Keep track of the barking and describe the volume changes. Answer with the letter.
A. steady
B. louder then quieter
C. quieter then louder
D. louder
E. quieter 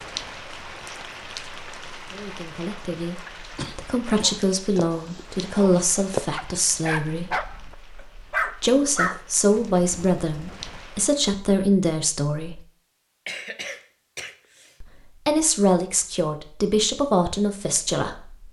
B.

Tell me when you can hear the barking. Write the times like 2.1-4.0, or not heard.
4.0-10.8.